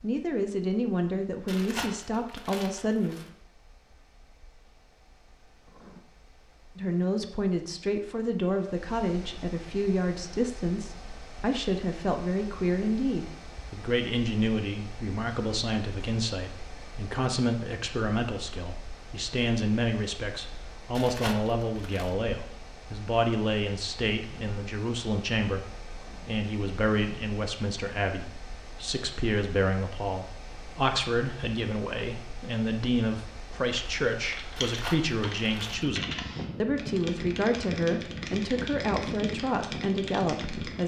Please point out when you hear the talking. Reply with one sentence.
The talking can be heard from 0.0 to 3.1 s and from 6.8 to 40.8 s.